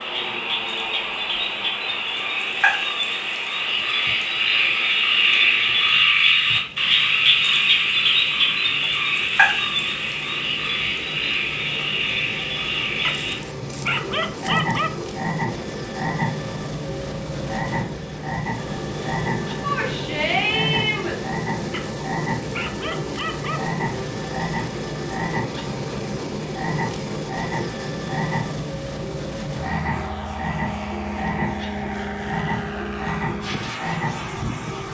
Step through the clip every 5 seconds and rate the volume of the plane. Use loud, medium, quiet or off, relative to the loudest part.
medium, quiet, medium, loud, loud, loud, loud.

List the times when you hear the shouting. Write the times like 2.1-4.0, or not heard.
19.6-21.1.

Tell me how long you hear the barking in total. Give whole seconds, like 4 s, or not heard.
4 s.